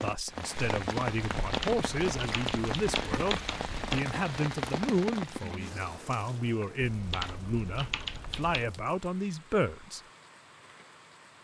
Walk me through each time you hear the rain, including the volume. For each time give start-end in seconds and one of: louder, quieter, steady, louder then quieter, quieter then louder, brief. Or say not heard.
0.0-11.3 quieter.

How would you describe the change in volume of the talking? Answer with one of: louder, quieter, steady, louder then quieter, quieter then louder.
steady.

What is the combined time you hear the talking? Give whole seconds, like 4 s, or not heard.
10 s.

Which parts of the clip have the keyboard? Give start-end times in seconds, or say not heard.
1.4-4.0, 6.8-8.8.